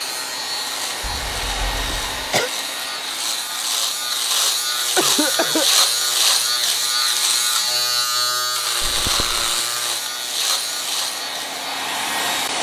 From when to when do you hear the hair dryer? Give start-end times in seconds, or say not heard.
0.0-7.8, 9.4-12.5.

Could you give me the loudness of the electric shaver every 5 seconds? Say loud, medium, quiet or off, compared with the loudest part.
medium, loud, medium.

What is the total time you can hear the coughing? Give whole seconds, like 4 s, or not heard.
3 s.